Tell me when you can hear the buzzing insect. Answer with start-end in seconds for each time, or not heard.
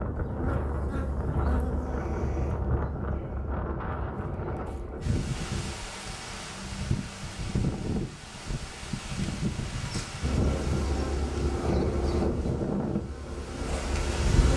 0.0-5.8, 10.2-14.5.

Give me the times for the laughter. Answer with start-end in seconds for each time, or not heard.
not heard.